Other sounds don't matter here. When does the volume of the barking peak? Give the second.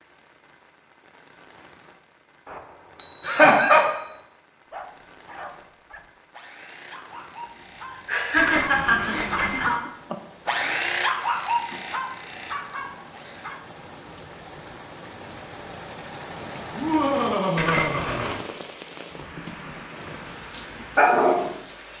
21 s.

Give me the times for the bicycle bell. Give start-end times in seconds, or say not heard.
2.5-4.2, 8.3-9.8, 17.6-18.4.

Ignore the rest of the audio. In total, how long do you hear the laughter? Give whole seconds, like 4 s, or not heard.
4 s.